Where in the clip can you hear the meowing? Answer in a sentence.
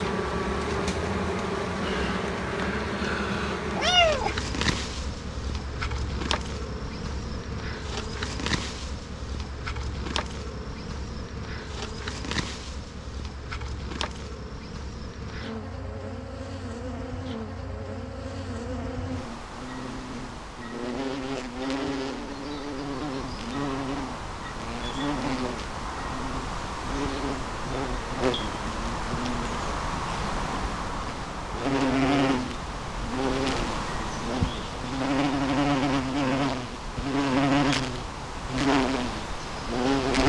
The meowing can be heard from 3.3 to 4.8 s.